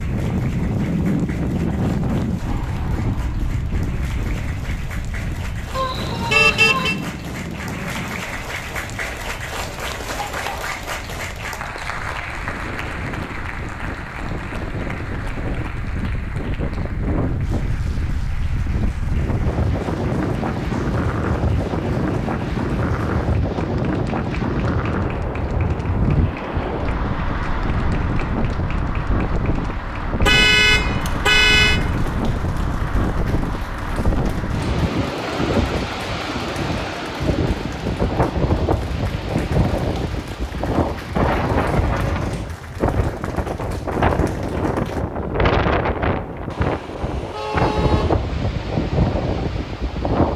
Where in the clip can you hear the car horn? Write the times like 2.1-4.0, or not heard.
5.8-7.0, 30.2-31.8, 46.5-48.1.